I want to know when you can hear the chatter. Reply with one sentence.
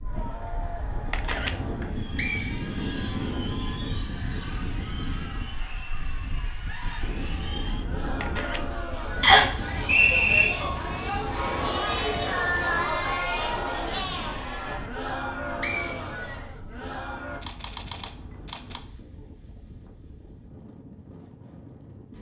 The chatter can be heard from 0.0 to 17.4 s.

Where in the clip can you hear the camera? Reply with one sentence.
You can hear the camera from 1.1 to 1.6 s, from 8.2 to 8.6 s and from 17.4 to 18.8 s.